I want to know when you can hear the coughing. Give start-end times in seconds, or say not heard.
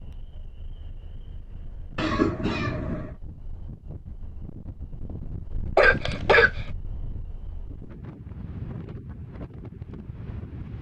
1.9-3.1, 5.8-6.6.